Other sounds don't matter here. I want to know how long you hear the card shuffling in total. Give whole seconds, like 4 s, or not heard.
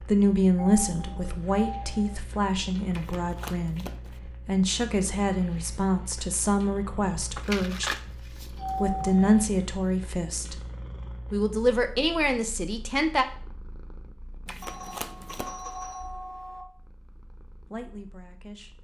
4 s.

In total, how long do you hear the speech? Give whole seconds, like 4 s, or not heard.
13 s.